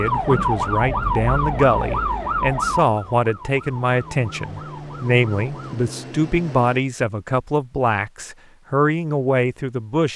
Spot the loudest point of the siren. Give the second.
1 s.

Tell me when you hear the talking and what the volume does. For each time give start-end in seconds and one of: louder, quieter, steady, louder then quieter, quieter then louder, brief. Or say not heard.
0.0-10.1 steady.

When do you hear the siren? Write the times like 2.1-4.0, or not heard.
0.0-5.8.